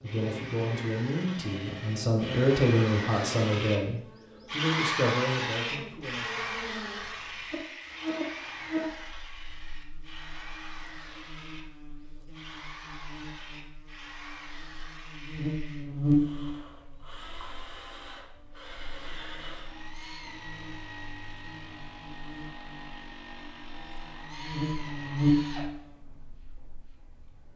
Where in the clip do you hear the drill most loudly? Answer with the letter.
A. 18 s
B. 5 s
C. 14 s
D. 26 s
B.